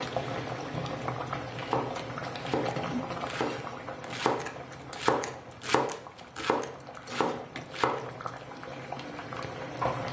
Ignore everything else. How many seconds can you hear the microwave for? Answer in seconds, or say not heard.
not heard.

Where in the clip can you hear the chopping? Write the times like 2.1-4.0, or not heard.
0.0-10.0.